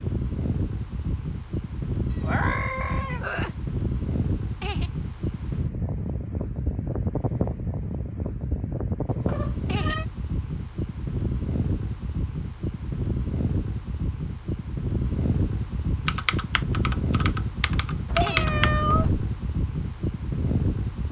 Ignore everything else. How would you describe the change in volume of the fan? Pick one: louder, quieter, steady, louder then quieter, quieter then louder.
steady.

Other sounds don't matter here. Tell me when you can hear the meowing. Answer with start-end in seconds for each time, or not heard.
2.1-3.5, 9.1-10.1, 18.1-19.1.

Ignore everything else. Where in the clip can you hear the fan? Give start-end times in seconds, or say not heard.
0.0-21.0.